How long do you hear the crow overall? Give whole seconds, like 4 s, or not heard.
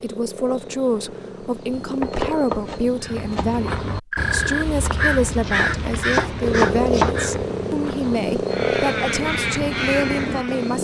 8 s.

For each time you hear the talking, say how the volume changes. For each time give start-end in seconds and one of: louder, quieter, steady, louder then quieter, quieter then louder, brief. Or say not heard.
0.0-10.7 steady.